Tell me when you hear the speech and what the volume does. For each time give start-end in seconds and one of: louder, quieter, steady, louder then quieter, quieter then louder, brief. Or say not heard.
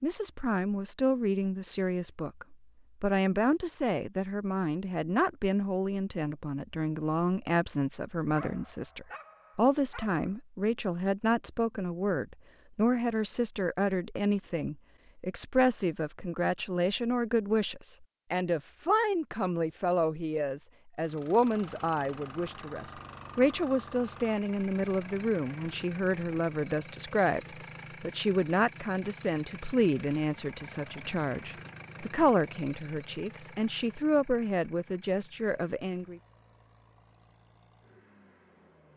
0.0-36.2 steady.